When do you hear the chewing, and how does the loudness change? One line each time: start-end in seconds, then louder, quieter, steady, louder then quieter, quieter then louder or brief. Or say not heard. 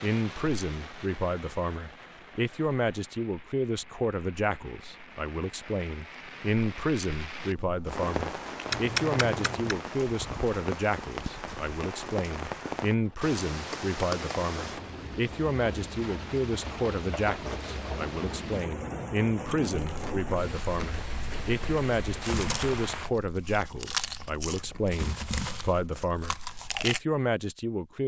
19.7-27.0 louder.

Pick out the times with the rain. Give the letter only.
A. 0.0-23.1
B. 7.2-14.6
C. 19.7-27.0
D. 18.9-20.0
A.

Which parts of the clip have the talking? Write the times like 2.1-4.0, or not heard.
0.0-28.0.